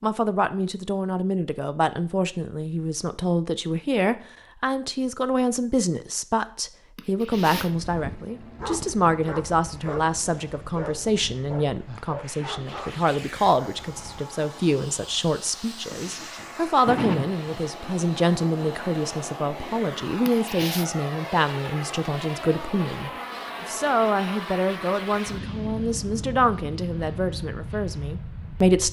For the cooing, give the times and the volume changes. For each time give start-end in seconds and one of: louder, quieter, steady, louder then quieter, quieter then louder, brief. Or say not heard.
not heard.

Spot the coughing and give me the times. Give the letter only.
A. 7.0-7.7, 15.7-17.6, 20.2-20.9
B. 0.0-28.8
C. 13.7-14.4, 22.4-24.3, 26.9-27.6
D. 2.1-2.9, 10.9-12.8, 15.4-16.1
A.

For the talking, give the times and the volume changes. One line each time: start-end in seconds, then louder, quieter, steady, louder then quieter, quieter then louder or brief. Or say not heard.
0.0-28.8 steady.